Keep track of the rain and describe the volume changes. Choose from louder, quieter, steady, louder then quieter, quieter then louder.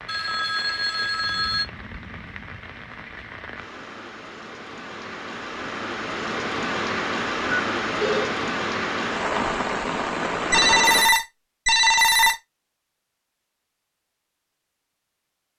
louder.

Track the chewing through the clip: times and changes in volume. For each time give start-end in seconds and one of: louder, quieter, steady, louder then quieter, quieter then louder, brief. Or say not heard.
not heard.